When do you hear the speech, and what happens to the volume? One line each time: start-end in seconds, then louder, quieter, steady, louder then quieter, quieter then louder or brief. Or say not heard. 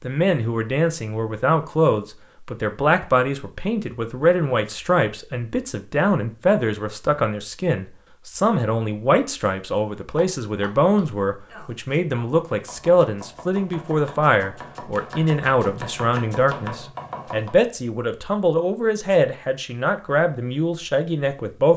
0.0-21.7 steady.